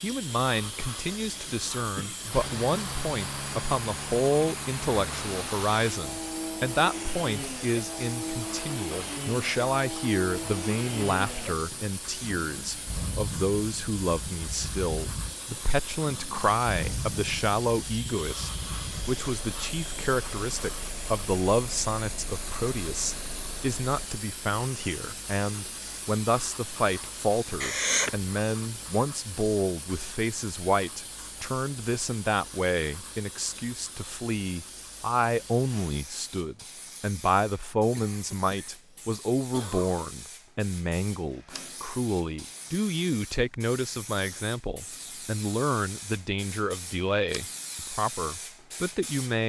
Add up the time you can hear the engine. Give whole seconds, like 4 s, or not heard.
22 s.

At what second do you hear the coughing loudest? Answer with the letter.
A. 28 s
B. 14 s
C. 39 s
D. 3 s
A.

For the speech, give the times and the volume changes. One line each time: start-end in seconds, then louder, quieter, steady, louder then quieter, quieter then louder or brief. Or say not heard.
0.0-49.4 steady.